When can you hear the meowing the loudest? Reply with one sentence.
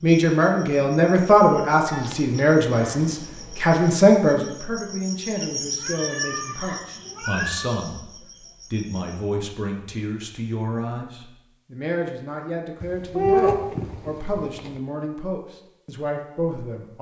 The volume of the meowing peaks at 13 seconds.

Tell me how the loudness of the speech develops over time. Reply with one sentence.
The loudness of the speech goes down.